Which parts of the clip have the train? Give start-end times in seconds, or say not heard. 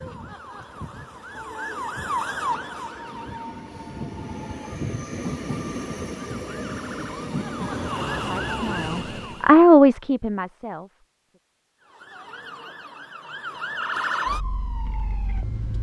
0.0-9.6.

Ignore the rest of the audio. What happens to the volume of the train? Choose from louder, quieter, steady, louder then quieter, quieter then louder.
louder.